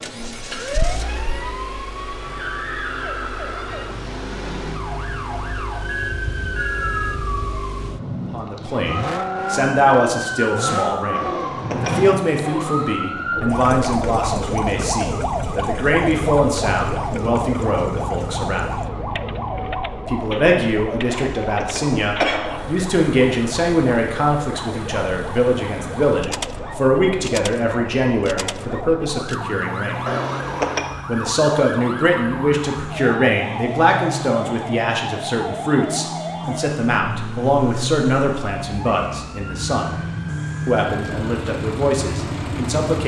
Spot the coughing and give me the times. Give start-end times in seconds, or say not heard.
11.2-12.1, 21.0-22.6, 30.1-30.9.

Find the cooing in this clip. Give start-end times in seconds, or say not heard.
not heard.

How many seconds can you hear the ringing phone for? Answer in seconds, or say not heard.
2 s.